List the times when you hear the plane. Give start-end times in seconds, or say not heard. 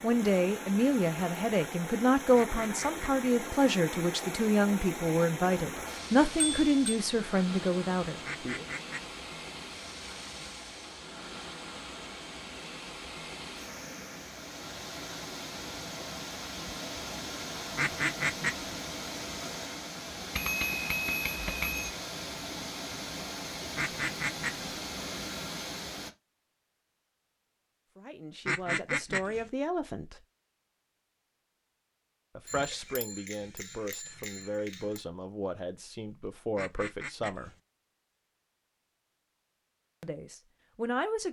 not heard.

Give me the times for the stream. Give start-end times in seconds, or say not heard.
0.0-26.1.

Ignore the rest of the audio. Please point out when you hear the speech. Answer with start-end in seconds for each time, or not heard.
0.0-8.7, 27.9-30.2, 32.4-37.5, 40.0-41.2.